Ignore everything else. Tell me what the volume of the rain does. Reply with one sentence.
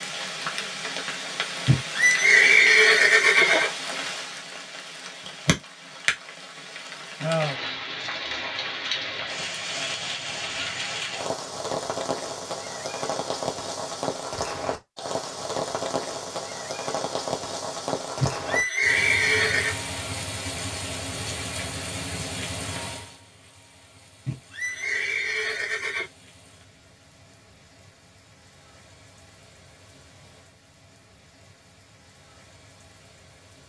The volume of the rain goes down.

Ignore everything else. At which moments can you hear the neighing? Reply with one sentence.
The neighing can be heard from 1.6 to 3.7 s, from 18.2 to 19.8 s and from 24.2 to 26.1 s.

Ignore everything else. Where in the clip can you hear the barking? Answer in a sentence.
The barking can't be heard in this clip.